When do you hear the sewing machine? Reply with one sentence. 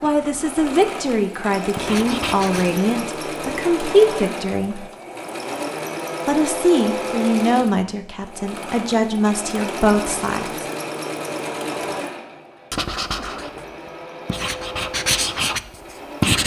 The sewing machine can be heard from 0.0 to 16.4 s.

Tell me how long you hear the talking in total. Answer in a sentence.
You can hear the talking for 9 seconds altogether.